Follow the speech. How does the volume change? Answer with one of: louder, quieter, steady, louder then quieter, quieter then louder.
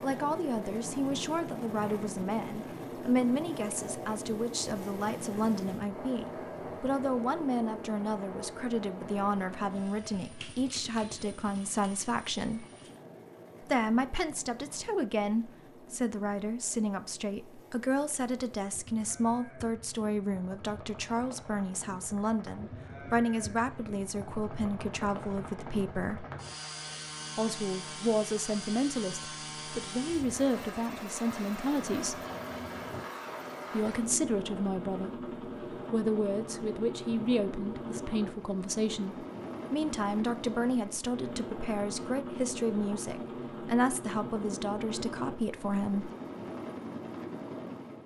steady.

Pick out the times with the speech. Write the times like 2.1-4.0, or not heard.
0.0-12.7, 13.7-26.2, 27.4-32.1, 33.7-46.1.